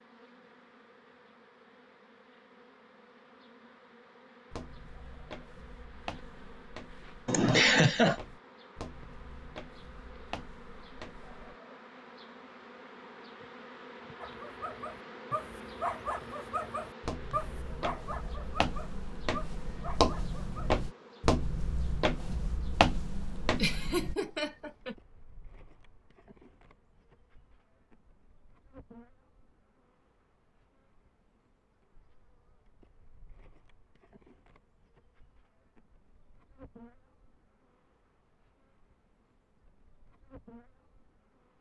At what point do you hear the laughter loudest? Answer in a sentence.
The volume of the laughter peaks at 8 seconds.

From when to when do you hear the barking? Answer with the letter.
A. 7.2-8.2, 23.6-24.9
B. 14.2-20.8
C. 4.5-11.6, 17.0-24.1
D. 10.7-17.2
B.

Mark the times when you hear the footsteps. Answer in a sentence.
You can hear the footsteps from 4.5 to 11.6 s and from 17.0 to 24.1 s.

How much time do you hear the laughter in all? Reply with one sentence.
You can hear the laughter for 2 seconds altogether.